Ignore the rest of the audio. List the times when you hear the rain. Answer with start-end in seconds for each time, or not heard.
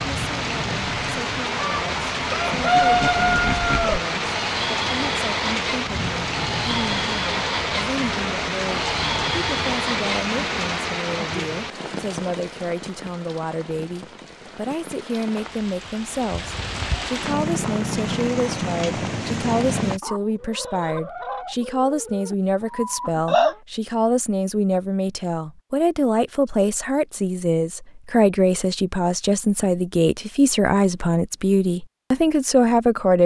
0.0-20.0.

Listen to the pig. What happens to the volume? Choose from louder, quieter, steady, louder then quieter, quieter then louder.
steady.